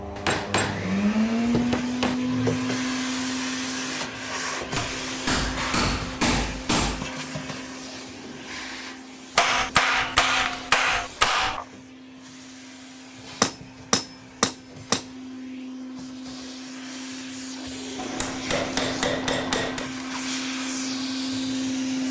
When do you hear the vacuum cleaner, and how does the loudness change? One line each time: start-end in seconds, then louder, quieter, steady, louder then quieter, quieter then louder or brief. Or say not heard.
0.0-22.0 quieter then louder.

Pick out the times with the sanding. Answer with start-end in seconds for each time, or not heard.
not heard.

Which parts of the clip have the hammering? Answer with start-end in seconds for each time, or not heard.
0.1-0.9, 1.7-2.1, 4.8-7.0, 9.3-11.7, 13.4-15.0, 17.9-19.9.